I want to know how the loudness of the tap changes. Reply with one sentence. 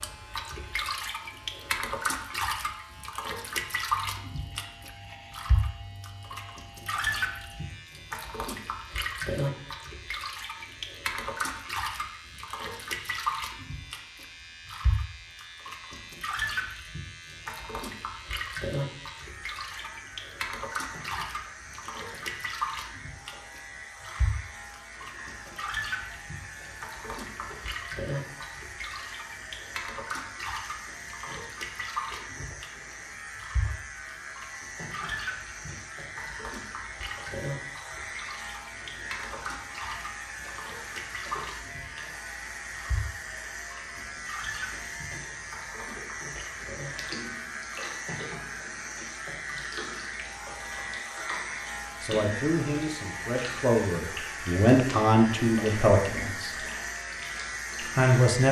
The loudness of the tap goes down.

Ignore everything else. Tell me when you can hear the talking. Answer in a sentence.
The talking can be heard from 52.0 to 56.5 s and from 57.9 to 58.4 s.